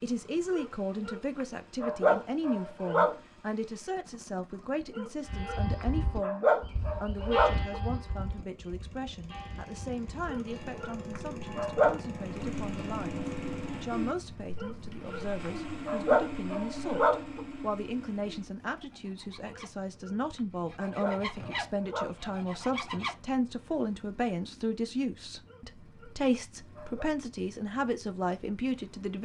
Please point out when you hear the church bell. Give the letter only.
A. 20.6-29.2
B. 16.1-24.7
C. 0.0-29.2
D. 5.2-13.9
D.